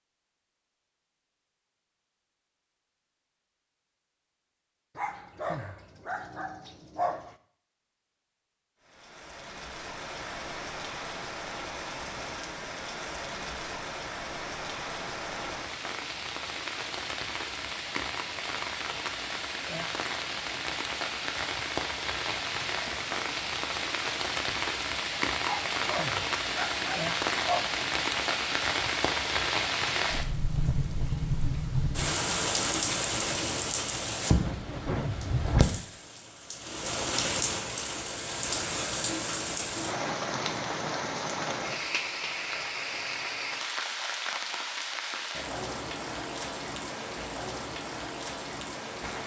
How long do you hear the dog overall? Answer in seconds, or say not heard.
5 s.